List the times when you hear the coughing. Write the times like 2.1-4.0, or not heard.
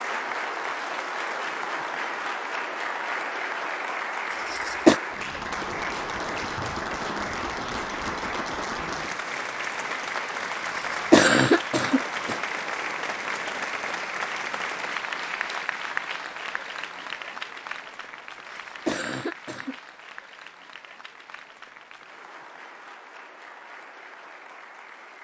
4.3-5.0, 10.8-12.3, 18.7-19.8.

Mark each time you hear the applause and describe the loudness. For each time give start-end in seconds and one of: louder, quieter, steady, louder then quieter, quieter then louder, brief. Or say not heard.
0.0-25.1 quieter.